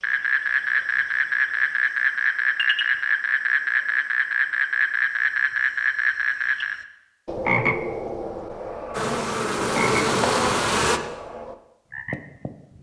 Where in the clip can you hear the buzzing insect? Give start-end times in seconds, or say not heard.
8.9-11.0.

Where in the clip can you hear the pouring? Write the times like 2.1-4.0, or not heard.
not heard.